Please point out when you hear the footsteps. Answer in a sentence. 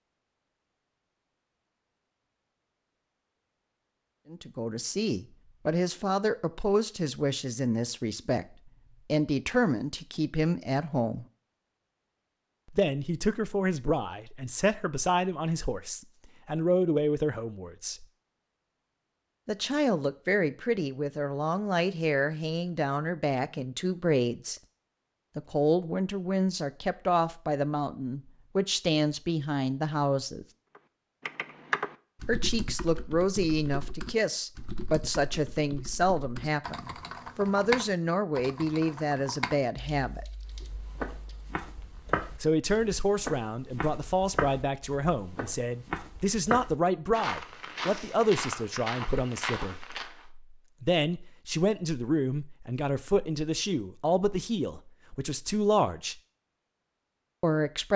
The footsteps can be heard from 40.5 to 50.2 s.